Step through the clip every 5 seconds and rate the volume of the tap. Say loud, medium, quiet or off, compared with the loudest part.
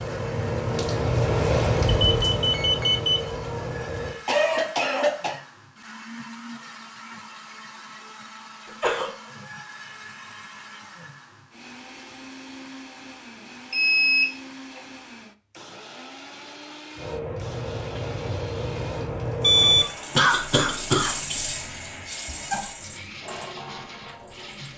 loud, off, off, medium, medium.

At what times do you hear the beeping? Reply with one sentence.
The beeping can be heard from 2.1 to 3.2 s, from 13.7 to 14.8 s and from 19.4 to 19.9 s.